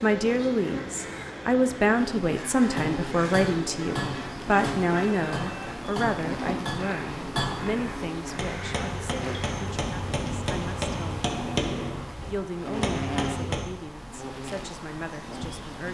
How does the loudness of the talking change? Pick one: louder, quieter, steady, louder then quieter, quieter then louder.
quieter.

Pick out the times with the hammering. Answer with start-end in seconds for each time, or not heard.
2.8-13.8.